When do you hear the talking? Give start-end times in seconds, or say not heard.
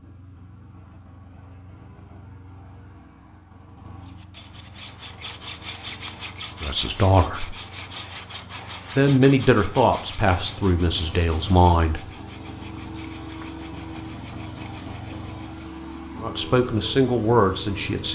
6.6-7.5, 8.9-12.1, 16.2-18.0.